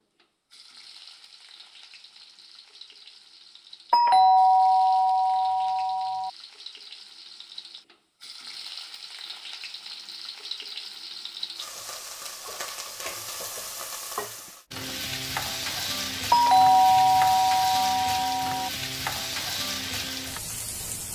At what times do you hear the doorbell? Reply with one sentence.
You can hear the doorbell from 3.9 to 6.3 s and from 16.3 to 18.7 s.